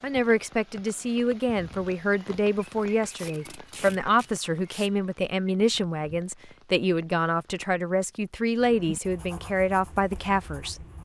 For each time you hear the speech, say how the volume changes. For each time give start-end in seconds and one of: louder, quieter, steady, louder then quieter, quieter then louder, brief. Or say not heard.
0.0-10.8 steady.